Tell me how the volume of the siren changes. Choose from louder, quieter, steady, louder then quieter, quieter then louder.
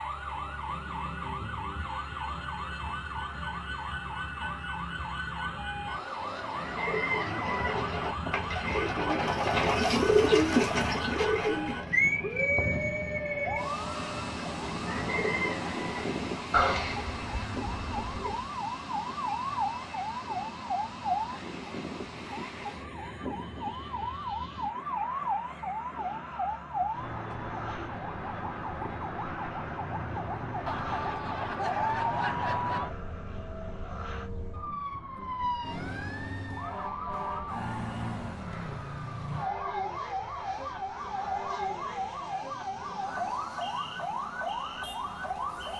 steady.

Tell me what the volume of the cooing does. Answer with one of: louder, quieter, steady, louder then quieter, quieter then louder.
louder then quieter.